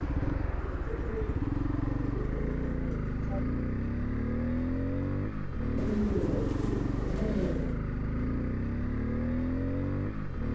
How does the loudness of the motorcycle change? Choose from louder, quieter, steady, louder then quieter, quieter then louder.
steady.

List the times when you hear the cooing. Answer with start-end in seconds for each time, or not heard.
0.6-3.4, 5.8-7.8.